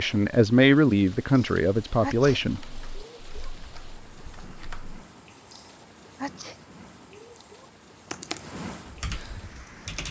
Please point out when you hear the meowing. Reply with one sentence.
The meowing can't be heard in this clip.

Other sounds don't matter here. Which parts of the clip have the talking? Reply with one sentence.
The talking can be heard from 0.0 to 2.6 s.